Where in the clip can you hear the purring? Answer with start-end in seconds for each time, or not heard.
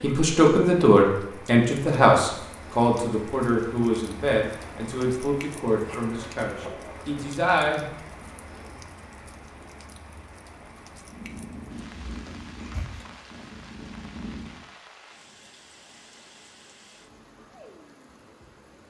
11.0-14.6.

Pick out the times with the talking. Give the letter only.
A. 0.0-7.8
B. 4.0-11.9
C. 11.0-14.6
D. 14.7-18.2
A.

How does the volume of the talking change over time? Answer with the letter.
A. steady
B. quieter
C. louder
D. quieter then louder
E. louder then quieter
B.